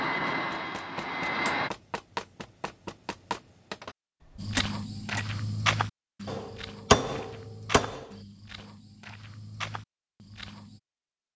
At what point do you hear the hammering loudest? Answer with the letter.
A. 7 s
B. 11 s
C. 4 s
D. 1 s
A.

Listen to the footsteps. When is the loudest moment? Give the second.
6 s.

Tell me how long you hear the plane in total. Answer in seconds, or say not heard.
2 s.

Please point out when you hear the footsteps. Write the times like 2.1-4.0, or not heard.
4.3-10.8.